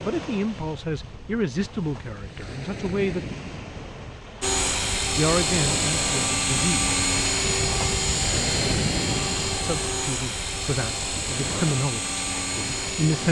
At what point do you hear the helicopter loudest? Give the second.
7 s.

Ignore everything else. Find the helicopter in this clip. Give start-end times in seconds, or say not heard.
4.4-13.2.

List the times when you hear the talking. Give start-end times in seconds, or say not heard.
0.0-3.4, 5.2-6.8, 9.6-13.2.